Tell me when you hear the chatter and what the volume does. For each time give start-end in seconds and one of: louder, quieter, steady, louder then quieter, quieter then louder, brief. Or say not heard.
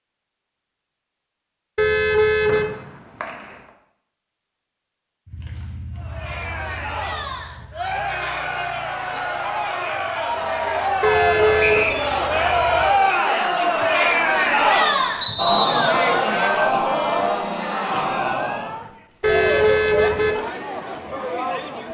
6.0-21.8 louder then quieter.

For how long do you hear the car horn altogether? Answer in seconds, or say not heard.
3 s.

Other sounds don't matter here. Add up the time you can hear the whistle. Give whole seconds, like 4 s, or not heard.
2 s.